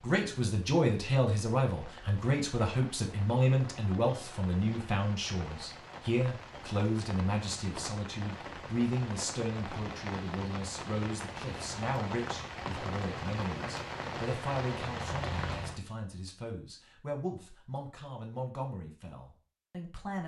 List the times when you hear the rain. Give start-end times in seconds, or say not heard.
0.0-15.8.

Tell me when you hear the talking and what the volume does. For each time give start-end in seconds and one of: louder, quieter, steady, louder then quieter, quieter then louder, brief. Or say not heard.
0.0-20.2 quieter.